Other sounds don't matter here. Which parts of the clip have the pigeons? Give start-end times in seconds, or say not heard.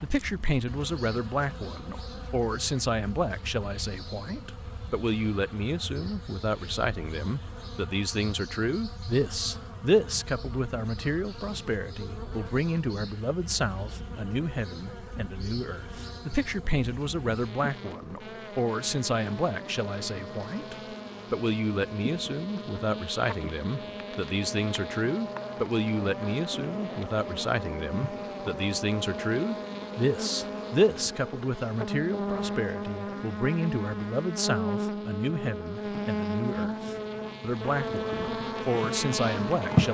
not heard.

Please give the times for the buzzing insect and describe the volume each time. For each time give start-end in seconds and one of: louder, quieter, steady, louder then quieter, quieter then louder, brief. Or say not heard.
0.0-39.8 louder.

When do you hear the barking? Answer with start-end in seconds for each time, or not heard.
not heard.